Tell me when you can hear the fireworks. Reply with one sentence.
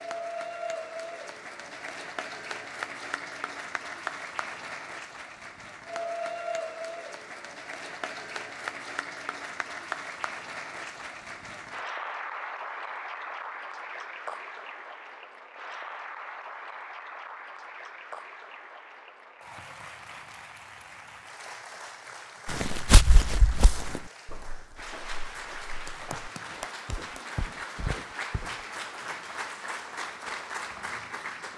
The fireworks can't be heard in this clip.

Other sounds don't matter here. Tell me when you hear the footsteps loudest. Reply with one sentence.
The volume of the footsteps peaks at 23 seconds.